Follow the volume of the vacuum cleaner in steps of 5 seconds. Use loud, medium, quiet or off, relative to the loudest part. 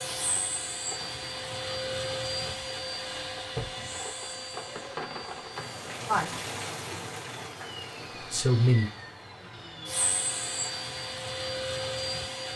loud, medium, loud.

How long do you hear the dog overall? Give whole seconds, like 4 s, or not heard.
not heard.